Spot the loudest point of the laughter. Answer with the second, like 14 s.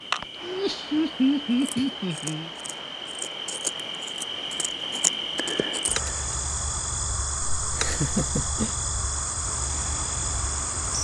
1 s.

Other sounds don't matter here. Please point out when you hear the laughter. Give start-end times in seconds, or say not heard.
0.4-2.5, 7.7-8.8.